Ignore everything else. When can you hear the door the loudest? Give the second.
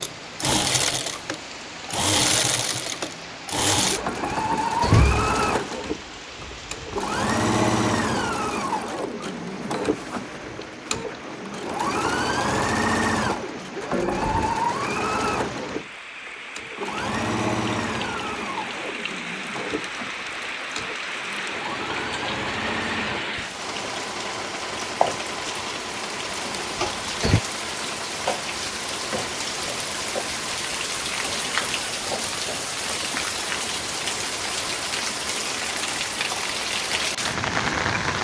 5 s.